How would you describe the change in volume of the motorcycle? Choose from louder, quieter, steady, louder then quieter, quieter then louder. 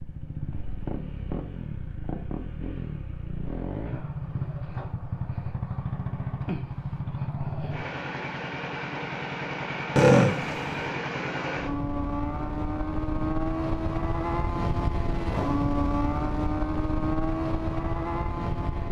louder.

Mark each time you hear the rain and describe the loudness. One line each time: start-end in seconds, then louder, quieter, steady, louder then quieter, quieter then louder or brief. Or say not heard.
not heard.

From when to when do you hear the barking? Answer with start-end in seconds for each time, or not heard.
not heard.